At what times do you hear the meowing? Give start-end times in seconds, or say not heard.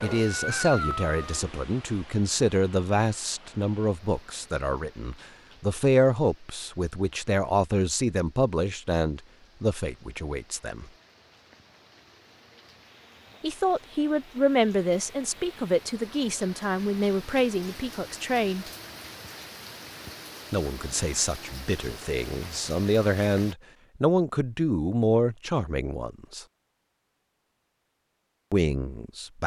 0.0-1.4.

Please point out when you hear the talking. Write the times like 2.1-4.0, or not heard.
0.0-10.9, 13.4-18.6, 20.5-26.4, 28.5-29.4.